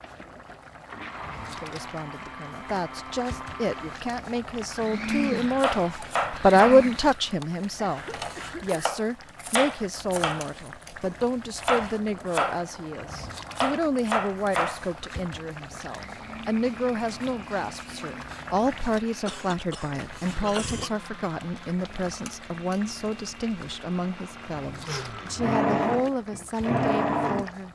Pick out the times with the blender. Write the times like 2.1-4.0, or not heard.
0.0-7.4, 14.8-27.6.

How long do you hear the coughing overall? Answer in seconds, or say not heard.
3 s.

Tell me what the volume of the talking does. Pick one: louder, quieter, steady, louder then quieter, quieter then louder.
quieter.